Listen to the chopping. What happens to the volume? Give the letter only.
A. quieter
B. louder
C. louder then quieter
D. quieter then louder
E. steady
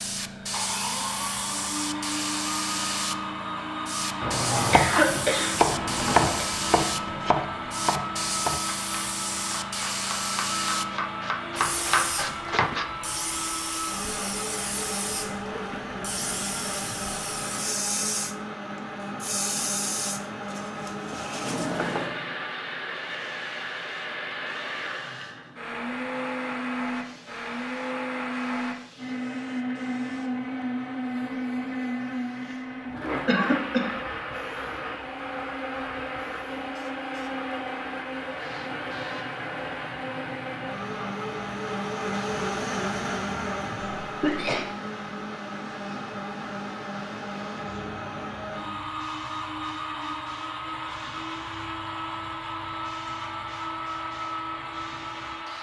D.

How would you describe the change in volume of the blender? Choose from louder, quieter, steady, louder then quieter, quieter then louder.
steady.